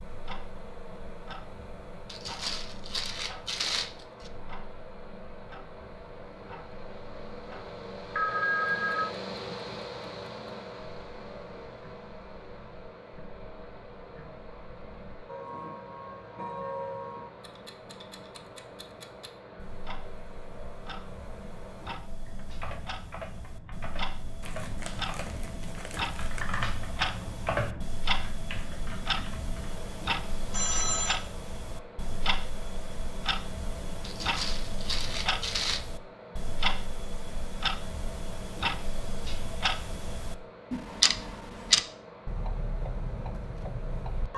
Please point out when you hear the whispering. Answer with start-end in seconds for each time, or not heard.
not heard.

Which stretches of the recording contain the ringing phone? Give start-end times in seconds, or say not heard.
8.2-9.1, 30.5-31.2.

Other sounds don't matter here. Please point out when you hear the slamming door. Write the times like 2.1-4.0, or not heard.
not heard.